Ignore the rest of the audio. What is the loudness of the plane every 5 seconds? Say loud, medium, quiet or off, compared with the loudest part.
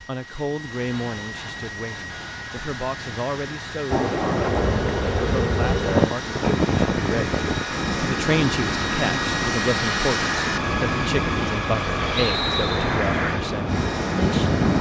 medium, loud, loud.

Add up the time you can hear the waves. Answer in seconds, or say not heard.
11 s.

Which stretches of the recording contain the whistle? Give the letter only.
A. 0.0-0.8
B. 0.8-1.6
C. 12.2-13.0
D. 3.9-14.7
C.